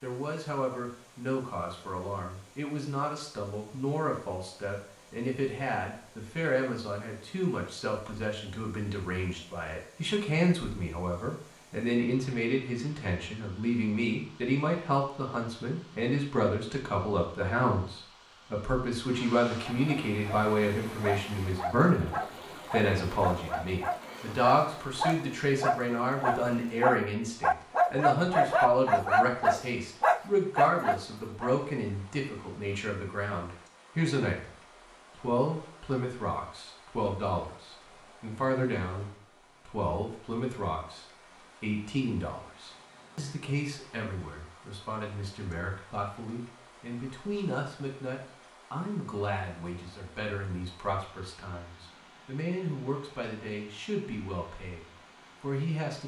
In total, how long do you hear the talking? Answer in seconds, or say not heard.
56 s.